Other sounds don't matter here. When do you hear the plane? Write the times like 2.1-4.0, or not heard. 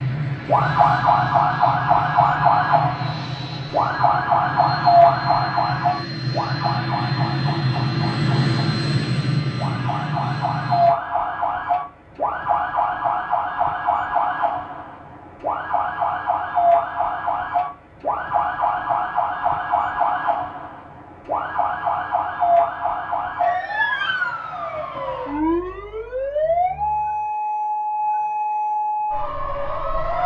0.0-10.9.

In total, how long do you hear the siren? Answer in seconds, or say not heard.
30 s.